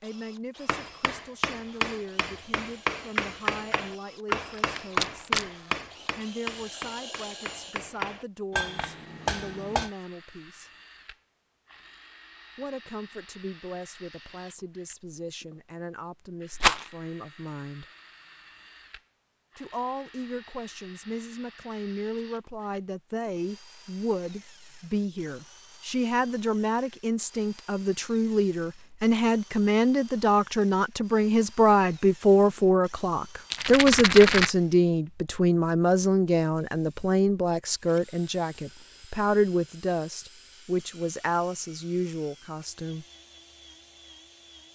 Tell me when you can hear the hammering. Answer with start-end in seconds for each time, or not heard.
0.7-9.9.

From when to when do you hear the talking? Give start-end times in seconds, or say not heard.
0.0-10.7, 12.6-17.9, 19.6-43.0.